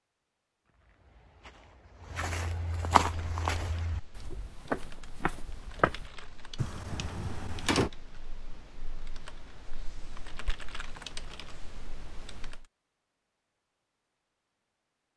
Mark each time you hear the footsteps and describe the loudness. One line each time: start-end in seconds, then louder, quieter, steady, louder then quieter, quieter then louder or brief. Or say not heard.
0.8-6.1 louder then quieter.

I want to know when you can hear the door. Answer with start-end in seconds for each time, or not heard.
6.5-7.9.